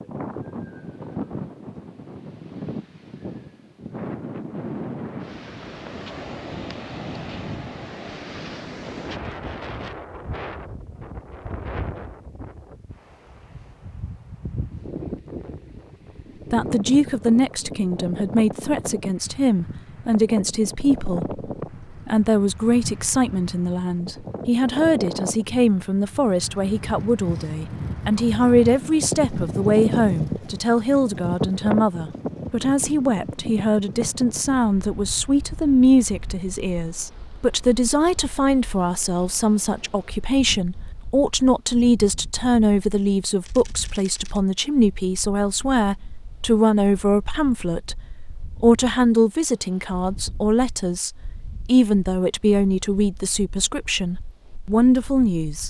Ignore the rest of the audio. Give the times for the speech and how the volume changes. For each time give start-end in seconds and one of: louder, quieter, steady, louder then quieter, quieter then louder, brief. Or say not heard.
16.5-55.6 steady.